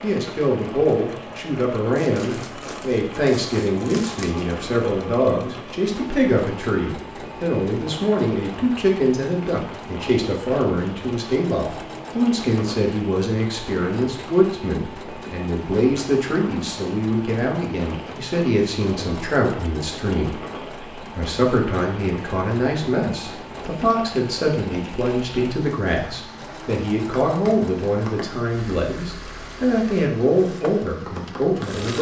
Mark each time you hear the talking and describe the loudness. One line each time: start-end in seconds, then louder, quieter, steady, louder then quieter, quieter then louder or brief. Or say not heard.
0.0-31.9 steady.